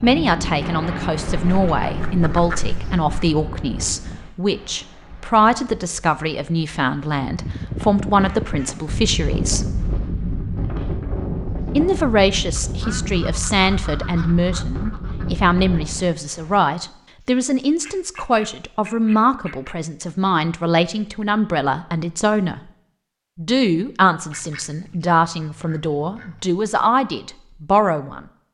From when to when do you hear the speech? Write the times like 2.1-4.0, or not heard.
0.0-9.7, 11.8-22.6, 23.4-28.2.